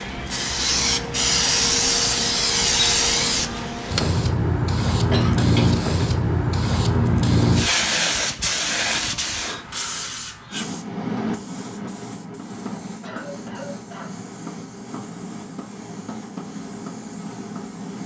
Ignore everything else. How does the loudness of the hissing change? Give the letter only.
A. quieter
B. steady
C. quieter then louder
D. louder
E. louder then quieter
A.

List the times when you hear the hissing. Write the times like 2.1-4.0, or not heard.
0.0-18.0.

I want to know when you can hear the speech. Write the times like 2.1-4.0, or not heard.
not heard.